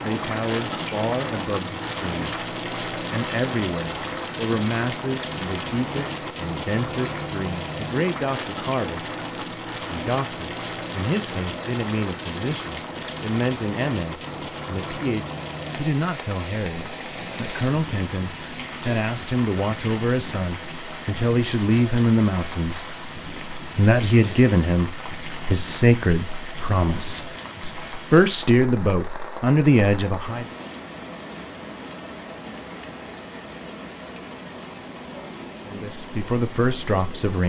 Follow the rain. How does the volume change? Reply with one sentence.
The volume of the rain goes down.